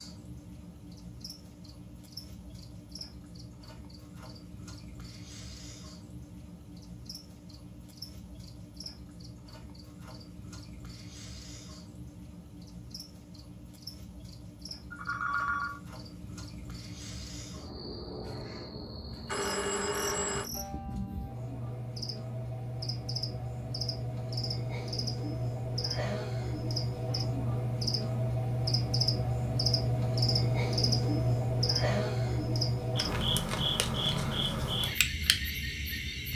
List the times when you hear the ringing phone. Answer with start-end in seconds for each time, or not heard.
14.9-15.8, 19.2-20.5.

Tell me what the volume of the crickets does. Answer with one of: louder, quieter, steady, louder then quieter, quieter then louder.
louder.